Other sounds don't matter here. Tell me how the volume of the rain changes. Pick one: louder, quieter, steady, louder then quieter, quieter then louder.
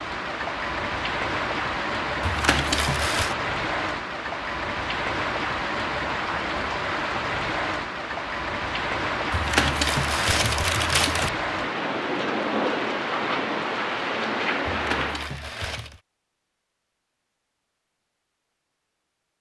steady.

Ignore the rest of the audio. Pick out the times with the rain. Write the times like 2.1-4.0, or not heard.
0.0-15.3.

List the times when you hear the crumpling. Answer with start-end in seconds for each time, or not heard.
2.2-3.4, 9.3-11.3, 14.7-16.0.